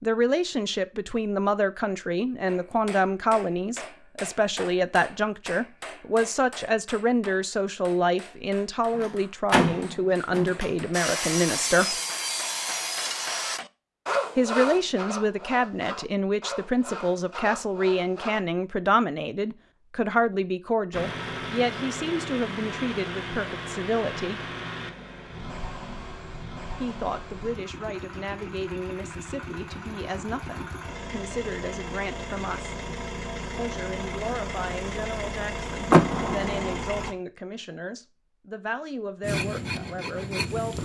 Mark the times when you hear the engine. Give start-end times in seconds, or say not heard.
20.9-37.1.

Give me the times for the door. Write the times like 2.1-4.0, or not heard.
9.0-10.7, 35.9-36.8.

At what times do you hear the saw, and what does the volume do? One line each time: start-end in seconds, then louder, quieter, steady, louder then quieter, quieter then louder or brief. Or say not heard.
10.9-18.4 quieter
39.2-40.8 brief.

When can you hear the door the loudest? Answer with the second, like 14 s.
36 s.